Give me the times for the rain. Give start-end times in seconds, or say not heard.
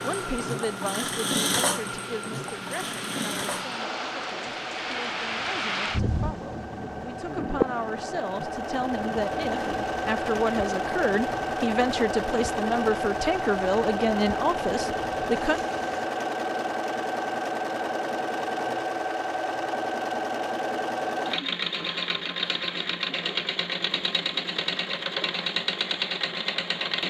0.0-16.1.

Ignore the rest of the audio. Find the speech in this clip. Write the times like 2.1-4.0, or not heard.
0.0-15.6.